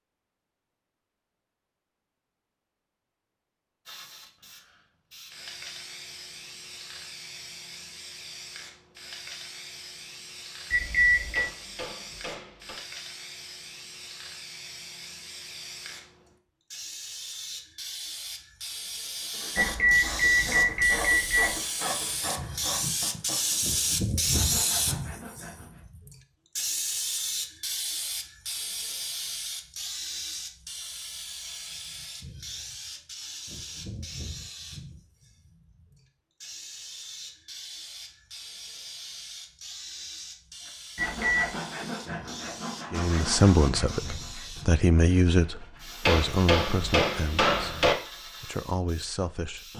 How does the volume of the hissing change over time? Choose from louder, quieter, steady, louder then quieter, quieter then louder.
louder then quieter.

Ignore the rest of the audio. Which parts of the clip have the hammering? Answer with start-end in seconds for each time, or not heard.
11.3-12.8, 46.0-48.0.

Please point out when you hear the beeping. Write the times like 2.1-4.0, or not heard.
10.7-11.5, 19.6-21.6, 41.0-41.5.